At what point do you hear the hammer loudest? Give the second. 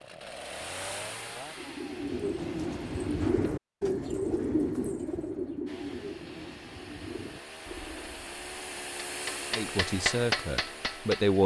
10 s.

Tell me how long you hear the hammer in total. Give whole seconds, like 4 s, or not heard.
2 s.